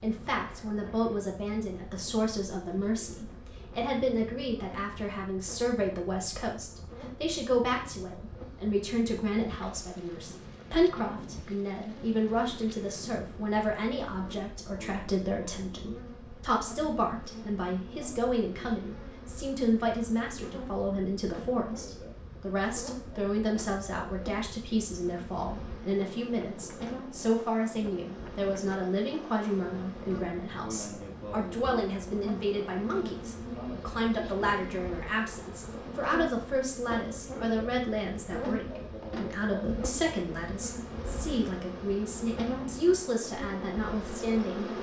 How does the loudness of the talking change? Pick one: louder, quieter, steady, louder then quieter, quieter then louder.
steady.